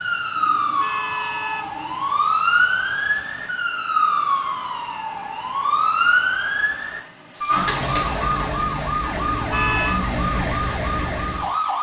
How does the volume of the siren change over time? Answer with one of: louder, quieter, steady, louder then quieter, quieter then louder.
steady.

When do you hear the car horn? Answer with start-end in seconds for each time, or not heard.
0.3-2.1, 9.1-10.0.